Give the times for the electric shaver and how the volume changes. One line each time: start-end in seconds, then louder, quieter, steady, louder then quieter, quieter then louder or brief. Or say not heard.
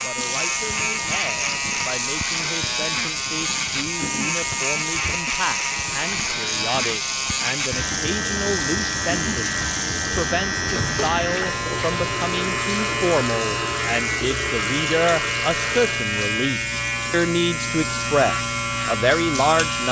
0.0-19.8 steady.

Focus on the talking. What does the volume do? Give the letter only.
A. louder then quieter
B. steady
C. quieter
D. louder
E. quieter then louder
D.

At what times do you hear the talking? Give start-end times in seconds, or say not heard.
0.0-19.8.